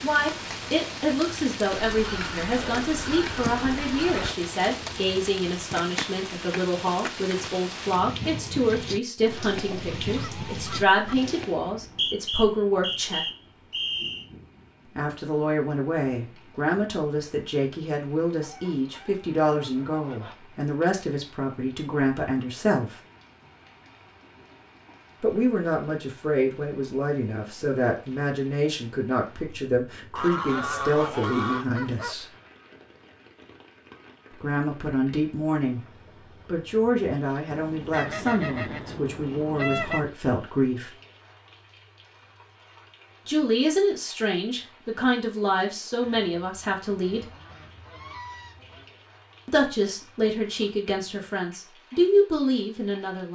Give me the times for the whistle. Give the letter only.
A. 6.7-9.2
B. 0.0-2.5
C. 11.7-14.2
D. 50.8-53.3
C.